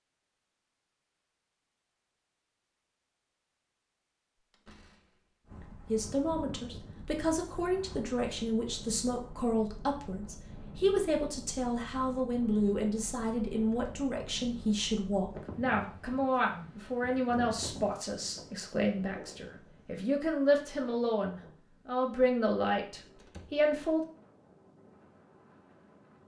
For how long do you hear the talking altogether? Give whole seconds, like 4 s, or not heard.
18 s.